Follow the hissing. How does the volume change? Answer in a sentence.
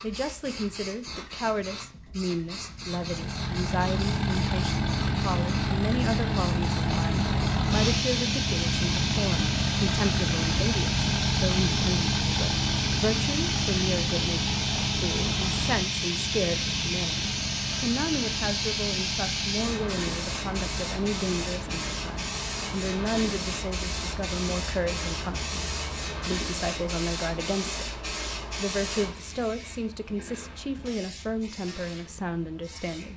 The loudness of the hissing goes up, then down.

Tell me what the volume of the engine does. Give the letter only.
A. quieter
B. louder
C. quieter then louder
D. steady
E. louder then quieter
A.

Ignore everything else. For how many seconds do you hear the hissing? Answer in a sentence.
The hissing can be heard for 33 seconds in total.